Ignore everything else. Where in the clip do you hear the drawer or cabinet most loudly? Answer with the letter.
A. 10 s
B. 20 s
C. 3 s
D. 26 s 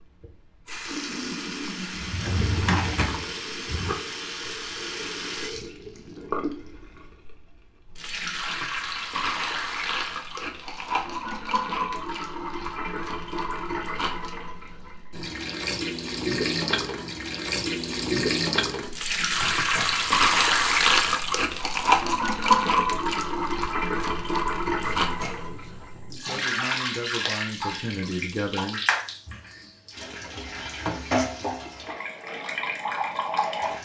C.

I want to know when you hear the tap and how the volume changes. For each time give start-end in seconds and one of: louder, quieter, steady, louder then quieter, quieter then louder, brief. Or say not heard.
0.0-33.8 louder then quieter.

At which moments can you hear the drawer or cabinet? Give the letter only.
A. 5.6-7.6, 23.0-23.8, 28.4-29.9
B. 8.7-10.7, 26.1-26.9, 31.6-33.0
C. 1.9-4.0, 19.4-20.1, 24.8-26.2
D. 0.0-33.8
C.